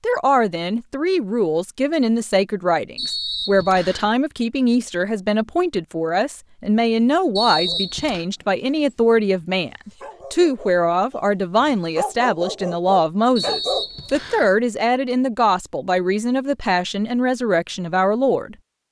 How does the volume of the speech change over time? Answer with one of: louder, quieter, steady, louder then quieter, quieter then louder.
steady.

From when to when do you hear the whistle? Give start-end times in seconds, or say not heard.
3.0-4.1, 7.3-8.2, 13.3-14.5.